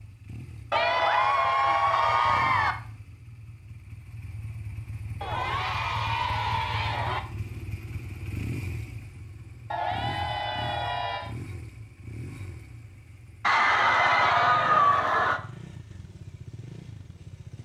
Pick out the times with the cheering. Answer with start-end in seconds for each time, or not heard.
0.7-2.8, 5.2-7.2, 9.7-11.3, 13.4-15.4.